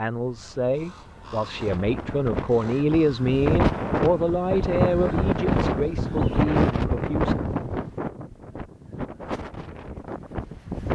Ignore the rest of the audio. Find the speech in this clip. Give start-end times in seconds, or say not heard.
0.0-7.4.